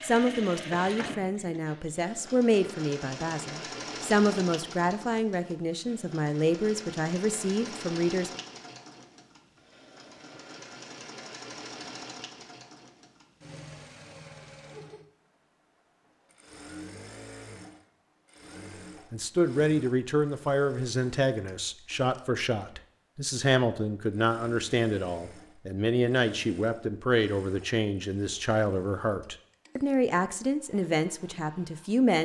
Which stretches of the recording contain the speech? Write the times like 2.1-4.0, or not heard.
0.0-8.3, 19.1-32.2.